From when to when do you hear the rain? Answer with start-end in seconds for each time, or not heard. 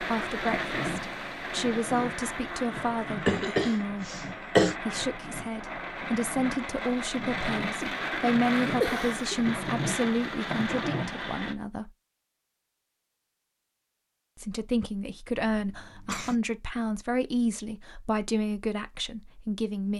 0.0-11.6.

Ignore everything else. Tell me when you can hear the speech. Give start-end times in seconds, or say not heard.
0.0-11.9, 14.3-19.9.